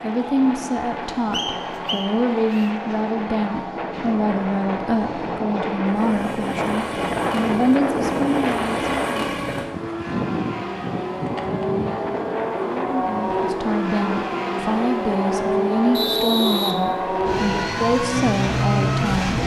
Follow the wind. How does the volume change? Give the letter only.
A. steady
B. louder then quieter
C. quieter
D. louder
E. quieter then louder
B.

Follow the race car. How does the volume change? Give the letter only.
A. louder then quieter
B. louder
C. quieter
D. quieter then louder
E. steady
B.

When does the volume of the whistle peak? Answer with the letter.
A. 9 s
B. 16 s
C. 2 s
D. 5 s
B.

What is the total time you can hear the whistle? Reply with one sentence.
The whistle can be heard for 3 seconds in total.